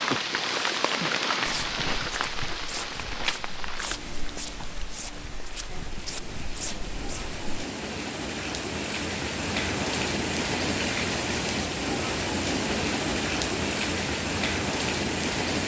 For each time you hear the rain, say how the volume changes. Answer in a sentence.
You can hear the rain from 0.0 to 15.6 s, getting quieter then louder.